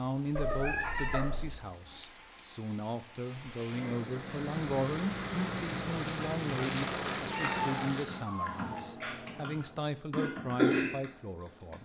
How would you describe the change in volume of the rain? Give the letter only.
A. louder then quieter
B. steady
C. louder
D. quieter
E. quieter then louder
C.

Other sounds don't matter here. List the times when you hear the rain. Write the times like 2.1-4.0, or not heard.
0.0-8.3.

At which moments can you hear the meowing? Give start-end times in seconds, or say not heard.
0.3-1.6, 7.2-8.8.